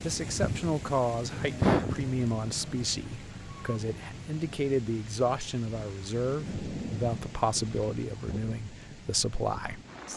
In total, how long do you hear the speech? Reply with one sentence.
The speech can be heard for 10 seconds in total.